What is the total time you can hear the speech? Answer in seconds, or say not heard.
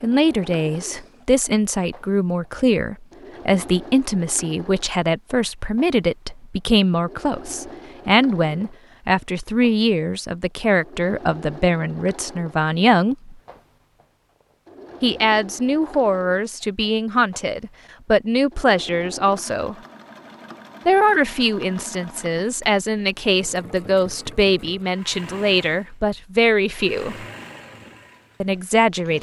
25 s.